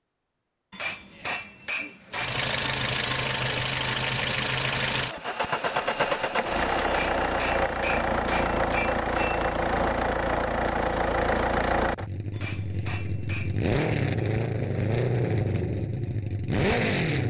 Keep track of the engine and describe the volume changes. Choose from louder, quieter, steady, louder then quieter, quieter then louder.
steady.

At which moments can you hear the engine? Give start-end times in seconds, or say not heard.
2.1-17.2.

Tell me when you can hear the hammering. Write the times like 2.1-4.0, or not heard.
0.7-2.5, 6.8-9.4, 12.3-14.3.